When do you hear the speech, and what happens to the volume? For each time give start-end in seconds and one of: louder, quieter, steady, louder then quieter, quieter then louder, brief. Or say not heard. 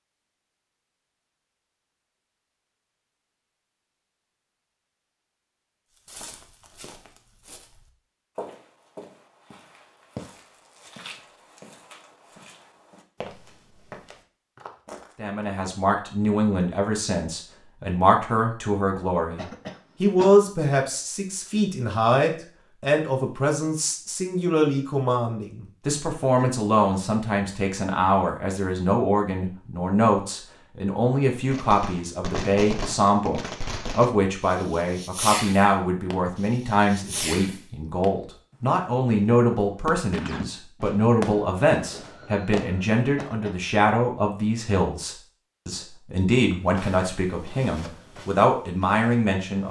15.2-49.6 steady.